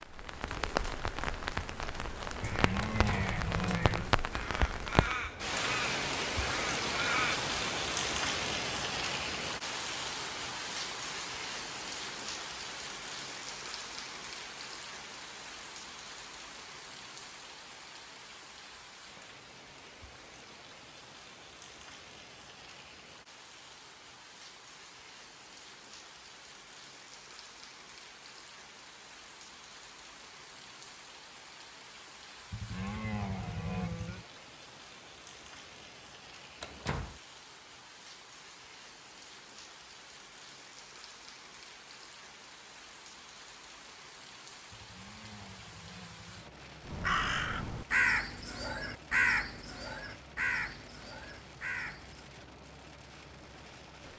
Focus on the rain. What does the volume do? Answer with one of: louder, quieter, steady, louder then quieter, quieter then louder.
quieter.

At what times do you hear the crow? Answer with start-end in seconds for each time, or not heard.
2.2-7.5, 46.9-52.3.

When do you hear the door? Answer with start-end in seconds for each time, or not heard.
2.9-3.3, 36.6-37.2.